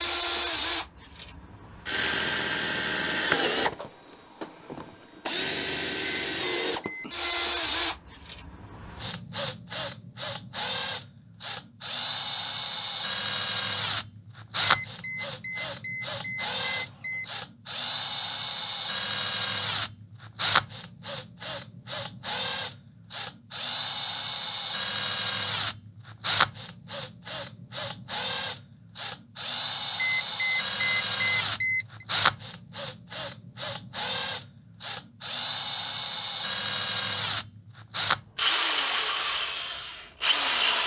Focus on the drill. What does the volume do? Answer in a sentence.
The volume of the drill stays about the same.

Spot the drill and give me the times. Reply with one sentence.
The drill can be heard from 0.0 to 40.8 s.